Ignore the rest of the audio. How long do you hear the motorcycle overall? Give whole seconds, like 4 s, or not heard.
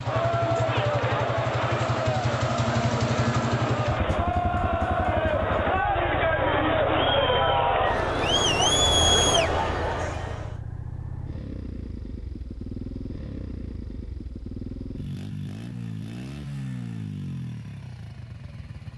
19 s.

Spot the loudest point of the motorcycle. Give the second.
3 s.